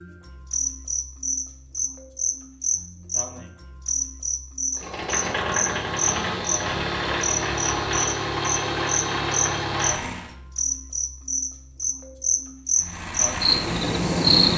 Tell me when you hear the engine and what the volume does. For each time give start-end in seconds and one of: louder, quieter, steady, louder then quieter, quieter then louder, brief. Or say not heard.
4.8-10.3 steady
12.8-14.5 brief.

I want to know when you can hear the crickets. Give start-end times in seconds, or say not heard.
0.0-14.5.